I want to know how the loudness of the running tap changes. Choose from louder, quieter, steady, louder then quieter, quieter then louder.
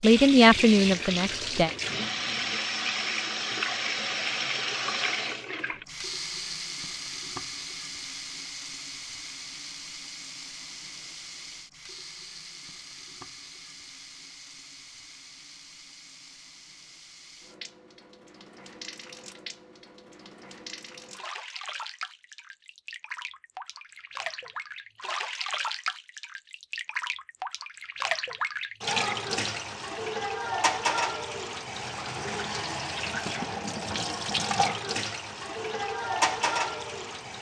quieter then louder.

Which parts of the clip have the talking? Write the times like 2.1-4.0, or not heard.
0.0-1.7.